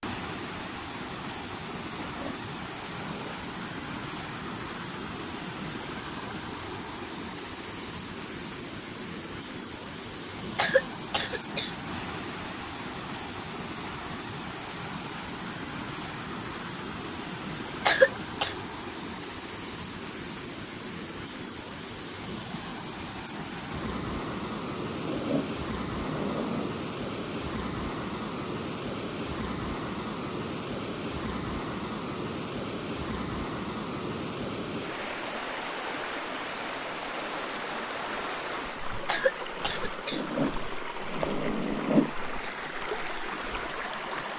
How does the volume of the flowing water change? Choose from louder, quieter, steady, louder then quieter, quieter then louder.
steady.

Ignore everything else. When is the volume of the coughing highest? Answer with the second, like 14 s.
18 s.